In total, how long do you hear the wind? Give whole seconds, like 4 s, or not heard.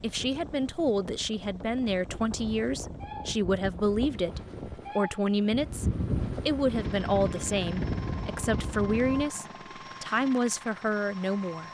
9 s.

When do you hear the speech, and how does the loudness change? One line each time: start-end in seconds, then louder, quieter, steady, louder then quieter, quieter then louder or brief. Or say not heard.
0.0-11.6 steady.